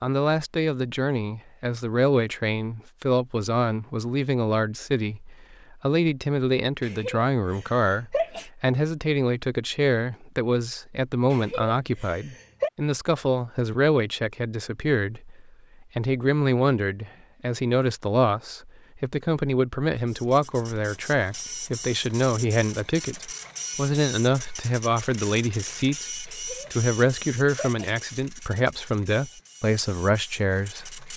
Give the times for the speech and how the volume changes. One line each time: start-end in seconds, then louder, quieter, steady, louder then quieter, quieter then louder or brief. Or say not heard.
0.0-31.1 steady.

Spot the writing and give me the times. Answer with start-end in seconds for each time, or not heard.
not heard.